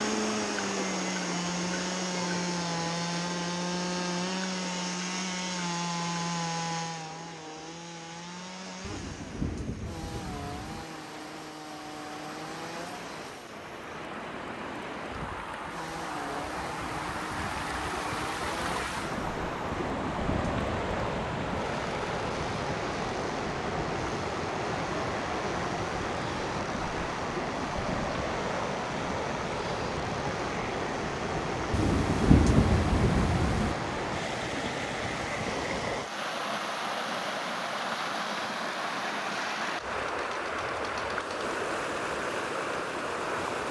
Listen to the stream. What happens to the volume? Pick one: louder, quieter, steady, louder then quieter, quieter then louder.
louder.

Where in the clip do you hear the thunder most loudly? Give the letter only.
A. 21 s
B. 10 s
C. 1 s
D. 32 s
D.